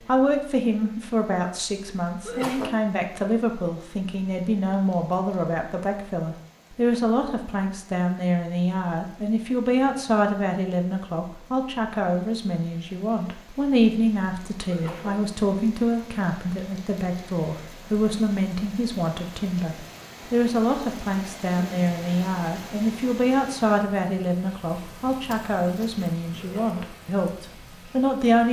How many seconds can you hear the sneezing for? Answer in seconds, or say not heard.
2 s.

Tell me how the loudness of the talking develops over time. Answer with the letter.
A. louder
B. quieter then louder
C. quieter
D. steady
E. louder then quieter
D.